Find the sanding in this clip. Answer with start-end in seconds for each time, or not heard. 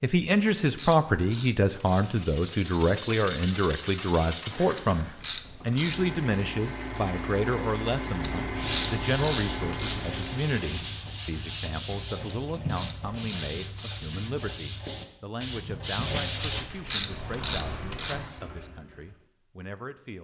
8.4-16.6.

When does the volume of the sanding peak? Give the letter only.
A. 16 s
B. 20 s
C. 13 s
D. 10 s
A.